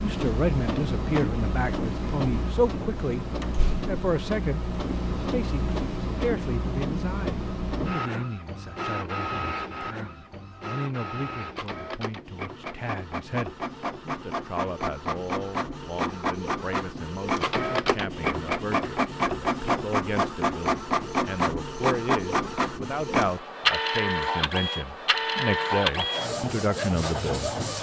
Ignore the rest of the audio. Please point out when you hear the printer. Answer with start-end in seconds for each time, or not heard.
0.0-27.7.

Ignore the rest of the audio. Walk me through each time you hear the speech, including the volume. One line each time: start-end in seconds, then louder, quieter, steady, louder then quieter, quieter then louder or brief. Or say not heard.
0.0-27.7 quieter then louder.